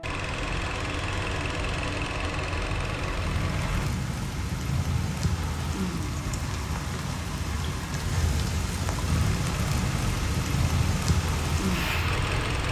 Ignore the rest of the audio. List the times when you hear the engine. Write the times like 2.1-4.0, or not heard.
0.0-3.9, 9.1-12.6.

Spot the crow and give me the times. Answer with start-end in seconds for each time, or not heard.
not heard.